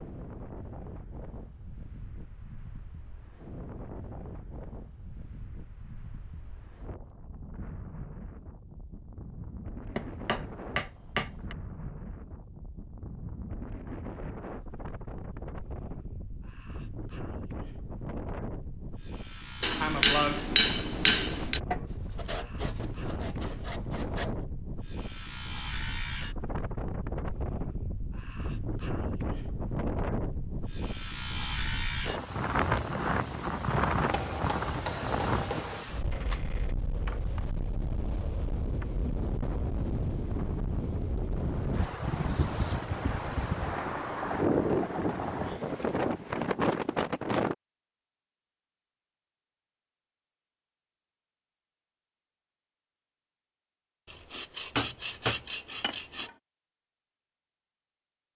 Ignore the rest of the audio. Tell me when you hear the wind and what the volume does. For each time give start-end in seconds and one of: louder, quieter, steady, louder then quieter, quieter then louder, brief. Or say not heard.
0.0-47.5 louder.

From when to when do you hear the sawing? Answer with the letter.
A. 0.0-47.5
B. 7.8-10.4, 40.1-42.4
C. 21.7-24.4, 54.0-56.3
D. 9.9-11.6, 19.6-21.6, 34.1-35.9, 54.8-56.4
C.